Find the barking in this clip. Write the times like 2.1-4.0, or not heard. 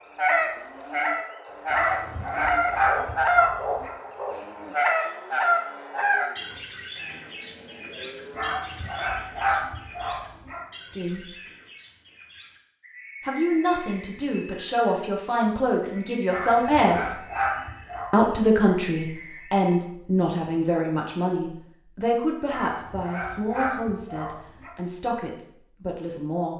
1.7-4.0, 8.3-10.7, 16.3-18.1, 22.5-24.8.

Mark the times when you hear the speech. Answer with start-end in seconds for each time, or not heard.
10.9-11.3, 13.2-17.1, 18.1-26.5.